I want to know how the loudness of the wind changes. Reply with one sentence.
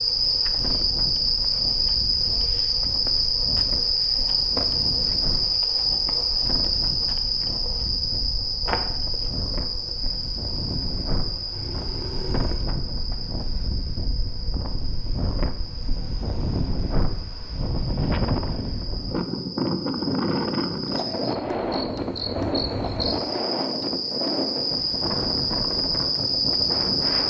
The loudness of the wind goes up.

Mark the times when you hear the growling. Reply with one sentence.
The growling can be heard from 11.5 to 12.7 s.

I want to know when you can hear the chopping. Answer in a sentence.
You can't hear the chopping here.